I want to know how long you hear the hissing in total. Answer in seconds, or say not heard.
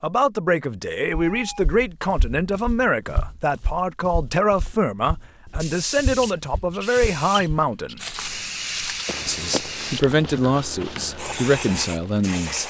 7 s.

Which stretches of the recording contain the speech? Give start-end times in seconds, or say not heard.
0.0-8.0, 9.2-12.6.